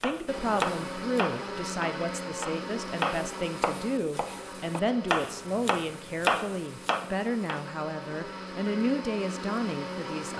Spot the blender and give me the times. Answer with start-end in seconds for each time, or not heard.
0.0-10.3.